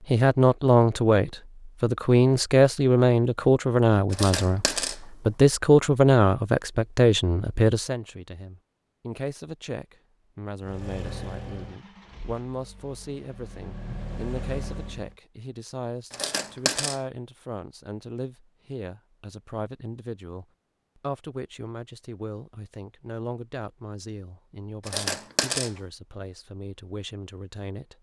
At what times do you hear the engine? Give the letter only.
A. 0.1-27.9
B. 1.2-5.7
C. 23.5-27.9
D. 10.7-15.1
D.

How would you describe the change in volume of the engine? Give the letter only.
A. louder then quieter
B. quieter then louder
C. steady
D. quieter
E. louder
B.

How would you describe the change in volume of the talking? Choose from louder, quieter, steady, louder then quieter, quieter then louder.
quieter.